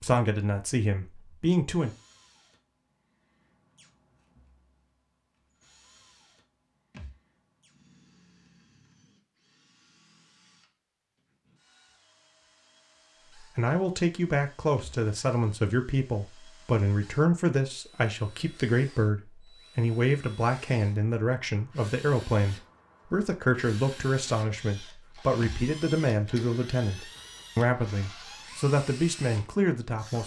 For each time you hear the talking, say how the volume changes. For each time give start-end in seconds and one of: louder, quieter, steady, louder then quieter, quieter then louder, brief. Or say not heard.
0.0-1.9 brief
13.3-30.2 steady.